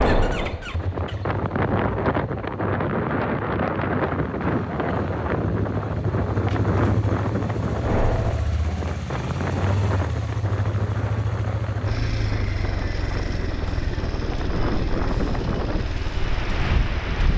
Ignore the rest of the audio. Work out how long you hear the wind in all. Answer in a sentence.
You can hear the wind for 17 seconds altogether.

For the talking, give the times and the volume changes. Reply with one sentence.
You can't hear the talking here.